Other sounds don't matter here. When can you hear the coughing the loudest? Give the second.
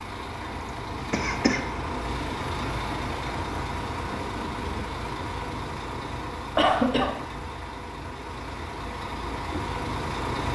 7 s.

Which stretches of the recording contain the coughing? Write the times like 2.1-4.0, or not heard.
1.1-1.6, 6.5-7.2.